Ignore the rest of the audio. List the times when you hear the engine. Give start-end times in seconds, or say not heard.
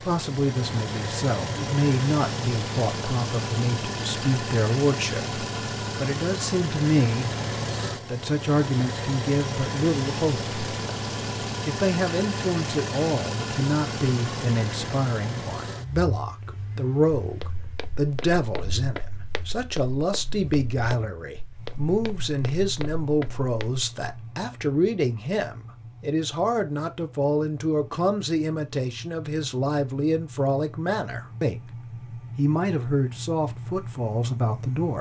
0.0-34.9.